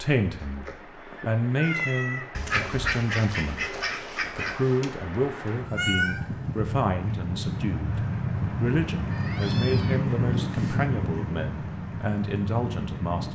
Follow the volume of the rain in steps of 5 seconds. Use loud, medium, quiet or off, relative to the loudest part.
quiet, loud, loud.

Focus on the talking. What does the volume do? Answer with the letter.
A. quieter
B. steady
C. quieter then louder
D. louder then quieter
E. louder
B.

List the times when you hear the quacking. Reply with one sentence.
You can hear the quacking from 2.4 to 4.9 s.